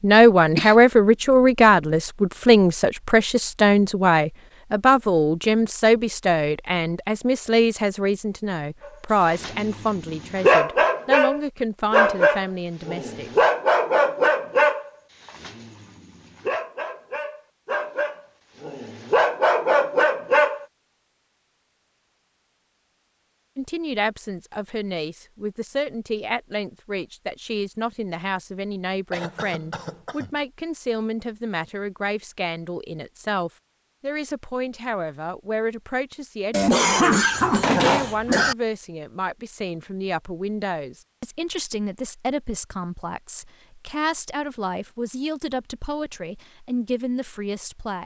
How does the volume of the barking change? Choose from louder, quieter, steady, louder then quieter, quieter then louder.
quieter then louder.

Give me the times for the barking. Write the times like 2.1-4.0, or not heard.
8.8-20.6.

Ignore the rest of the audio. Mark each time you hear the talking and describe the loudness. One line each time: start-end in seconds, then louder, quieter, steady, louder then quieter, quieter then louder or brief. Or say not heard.
0.0-13.3 quieter
23.6-48.0 steady.